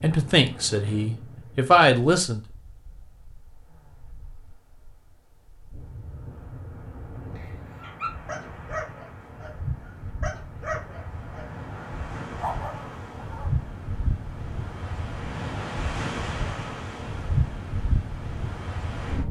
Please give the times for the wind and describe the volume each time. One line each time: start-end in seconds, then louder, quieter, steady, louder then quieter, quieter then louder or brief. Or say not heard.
0.0-19.2 louder.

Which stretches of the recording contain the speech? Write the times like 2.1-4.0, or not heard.
0.0-2.4.